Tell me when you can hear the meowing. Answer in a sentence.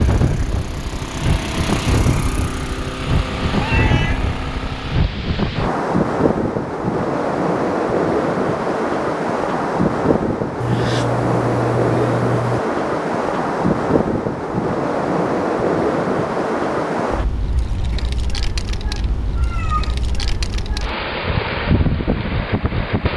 The meowing can be heard from 3.5 to 4.2 s, from 10.6 to 12.6 s and from 19.4 to 20.0 s.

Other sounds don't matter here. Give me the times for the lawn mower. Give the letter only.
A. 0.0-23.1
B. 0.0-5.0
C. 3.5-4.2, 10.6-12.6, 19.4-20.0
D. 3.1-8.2
B.